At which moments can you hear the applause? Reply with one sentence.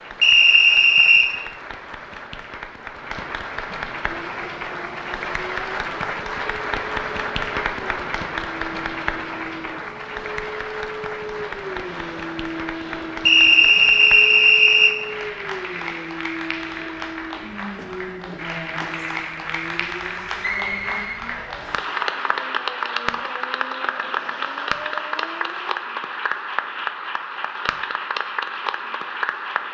You can hear the applause from 0.0 to 29.6 s.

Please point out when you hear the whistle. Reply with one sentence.
You can hear the whistle from 0.2 to 1.3 s, from 13.2 to 14.9 s and from 20.4 to 21.9 s.